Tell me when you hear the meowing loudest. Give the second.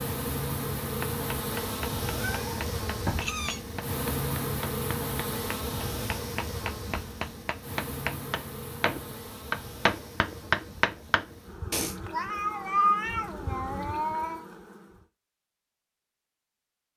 13 s.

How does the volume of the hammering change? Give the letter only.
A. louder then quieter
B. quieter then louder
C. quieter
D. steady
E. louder
E.